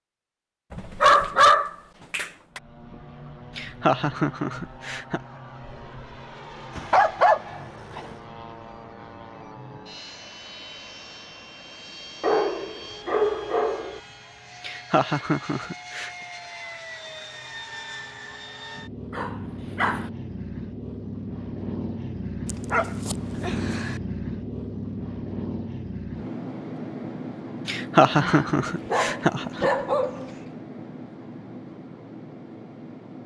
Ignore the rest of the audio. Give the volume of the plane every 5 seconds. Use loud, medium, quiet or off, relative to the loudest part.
medium, medium, medium, medium, loud, loud, medium.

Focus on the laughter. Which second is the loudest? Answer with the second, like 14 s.
28 s.